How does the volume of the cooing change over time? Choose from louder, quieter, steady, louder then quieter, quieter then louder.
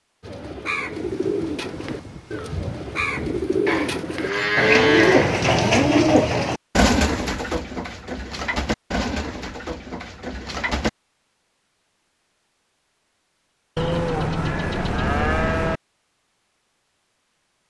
louder then quieter.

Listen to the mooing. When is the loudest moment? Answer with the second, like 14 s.
5 s.